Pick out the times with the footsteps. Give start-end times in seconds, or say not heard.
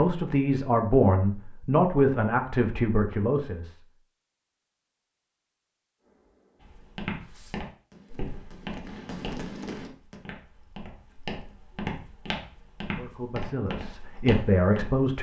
6.6-15.1.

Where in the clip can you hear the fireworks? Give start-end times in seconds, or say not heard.
6.0-10.2.